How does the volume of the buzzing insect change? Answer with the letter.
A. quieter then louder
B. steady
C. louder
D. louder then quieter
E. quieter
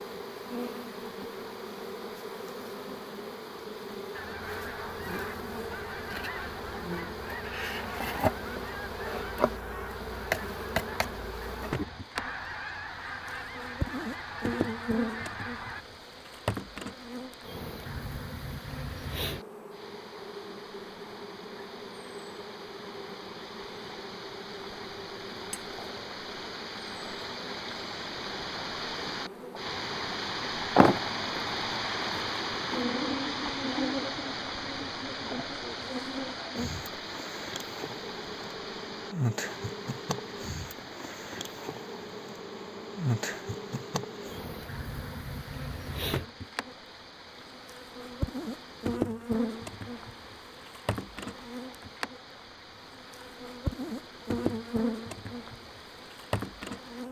B.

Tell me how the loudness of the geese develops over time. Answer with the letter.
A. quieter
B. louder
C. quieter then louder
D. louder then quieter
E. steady
E.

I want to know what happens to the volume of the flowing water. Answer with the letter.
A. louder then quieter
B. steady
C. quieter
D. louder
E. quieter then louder
A.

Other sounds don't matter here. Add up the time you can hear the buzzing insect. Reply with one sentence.
The buzzing insect can be heard for 57 seconds in total.